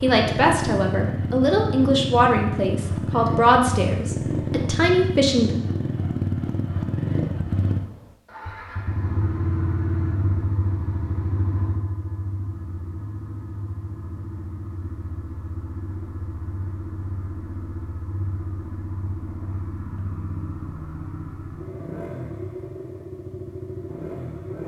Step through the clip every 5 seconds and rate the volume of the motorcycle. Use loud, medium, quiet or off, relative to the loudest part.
loud, loud, medium, medium, medium.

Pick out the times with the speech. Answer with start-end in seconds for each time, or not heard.
0.0-5.5.